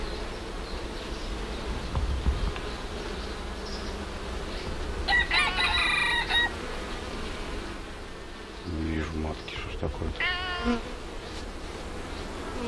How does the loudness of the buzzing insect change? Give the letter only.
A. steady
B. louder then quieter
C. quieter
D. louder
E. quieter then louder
A.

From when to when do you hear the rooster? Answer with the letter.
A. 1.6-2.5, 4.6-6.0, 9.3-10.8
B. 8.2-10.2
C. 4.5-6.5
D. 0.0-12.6
C.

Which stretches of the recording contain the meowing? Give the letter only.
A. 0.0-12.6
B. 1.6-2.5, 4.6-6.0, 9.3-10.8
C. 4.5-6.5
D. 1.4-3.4
B.